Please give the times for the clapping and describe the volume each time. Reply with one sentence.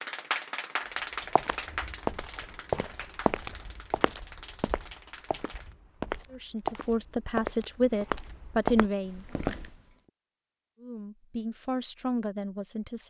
You can hear the clapping from 0.0 to 5.8 s, getting quieter.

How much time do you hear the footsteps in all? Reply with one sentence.
The footsteps can be heard for 8 seconds in total.